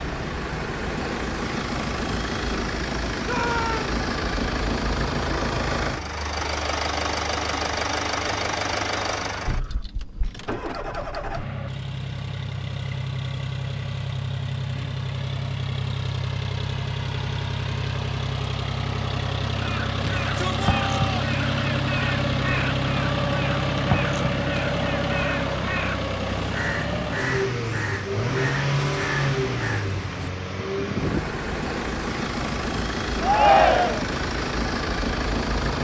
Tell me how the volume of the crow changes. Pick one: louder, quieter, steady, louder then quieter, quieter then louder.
steady.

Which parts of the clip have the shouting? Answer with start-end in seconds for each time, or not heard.
3.2-3.9, 20.1-21.1, 33.2-34.0.